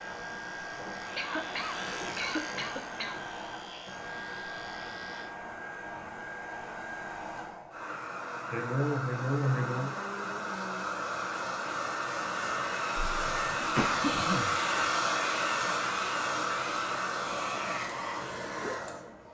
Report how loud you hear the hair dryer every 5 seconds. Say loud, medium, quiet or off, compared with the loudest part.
medium, medium, loud, loud.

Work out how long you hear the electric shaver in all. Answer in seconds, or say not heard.
5 s.